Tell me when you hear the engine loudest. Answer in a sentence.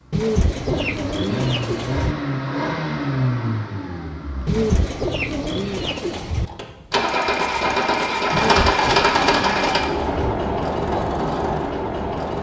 The loudest moment of the engine is at 9 seconds.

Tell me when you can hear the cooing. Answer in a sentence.
You can hear the cooing from 0.1 to 2.1 s, from 4.5 to 6.5 s and from 8.3 to 10.3 s.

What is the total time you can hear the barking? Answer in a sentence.
You can't hear the barking here.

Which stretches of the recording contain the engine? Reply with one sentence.
The engine can be heard from 0.0 to 12.3 s.